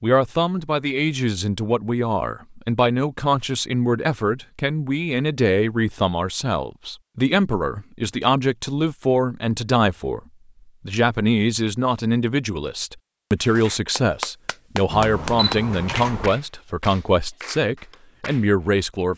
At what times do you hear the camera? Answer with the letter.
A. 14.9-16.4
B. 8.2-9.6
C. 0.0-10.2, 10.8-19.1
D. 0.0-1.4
A.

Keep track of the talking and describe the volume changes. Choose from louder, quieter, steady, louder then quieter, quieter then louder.
steady.